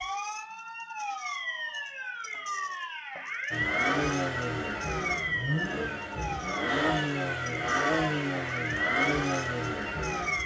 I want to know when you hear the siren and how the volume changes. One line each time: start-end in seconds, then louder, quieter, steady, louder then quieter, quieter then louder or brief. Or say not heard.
0.0-10.4 steady.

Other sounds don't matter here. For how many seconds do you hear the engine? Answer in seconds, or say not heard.
7 s.